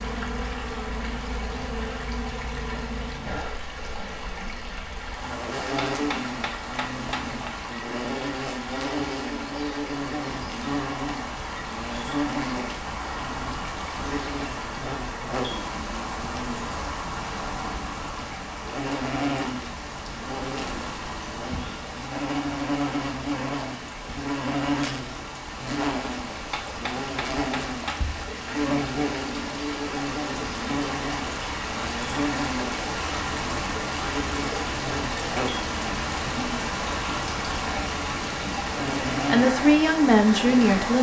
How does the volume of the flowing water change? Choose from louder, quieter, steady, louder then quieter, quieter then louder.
louder.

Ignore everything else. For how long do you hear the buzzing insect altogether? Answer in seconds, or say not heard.
41 s.